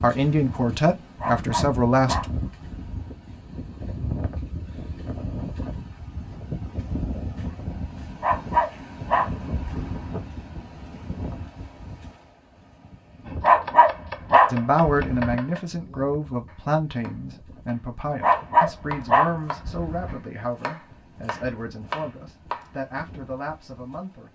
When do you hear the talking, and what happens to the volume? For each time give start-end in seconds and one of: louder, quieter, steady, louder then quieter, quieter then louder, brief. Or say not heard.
0.0-2.2 brief
14.5-24.2 quieter.